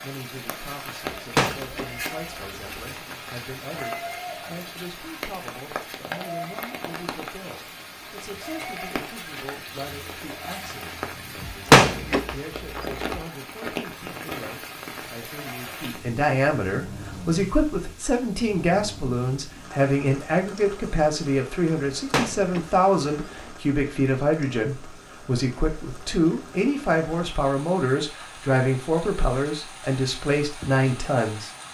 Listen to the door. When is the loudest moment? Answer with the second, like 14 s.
12 s.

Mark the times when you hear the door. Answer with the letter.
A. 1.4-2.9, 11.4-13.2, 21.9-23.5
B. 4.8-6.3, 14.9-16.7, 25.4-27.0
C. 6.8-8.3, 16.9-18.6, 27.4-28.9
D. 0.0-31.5
A.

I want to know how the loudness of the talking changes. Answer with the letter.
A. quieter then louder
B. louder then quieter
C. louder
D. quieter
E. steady
C.